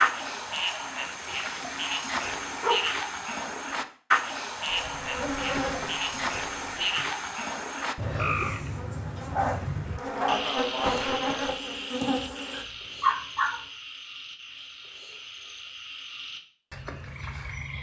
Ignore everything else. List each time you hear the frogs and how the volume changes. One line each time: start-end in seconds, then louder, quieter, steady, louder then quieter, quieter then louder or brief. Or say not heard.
0.0-17.7 quieter.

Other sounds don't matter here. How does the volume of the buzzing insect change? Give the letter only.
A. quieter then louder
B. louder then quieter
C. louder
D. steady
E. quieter
A.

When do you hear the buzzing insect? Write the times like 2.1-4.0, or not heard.
4.7-12.7.